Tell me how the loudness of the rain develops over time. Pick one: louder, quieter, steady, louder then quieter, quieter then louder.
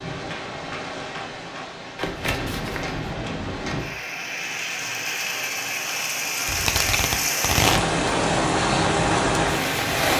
louder.